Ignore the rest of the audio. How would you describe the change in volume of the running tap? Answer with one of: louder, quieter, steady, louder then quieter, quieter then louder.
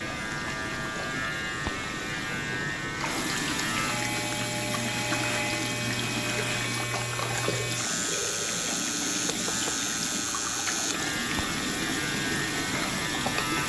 louder.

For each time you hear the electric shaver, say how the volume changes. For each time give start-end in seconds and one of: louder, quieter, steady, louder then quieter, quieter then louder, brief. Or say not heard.
0.0-13.6 steady.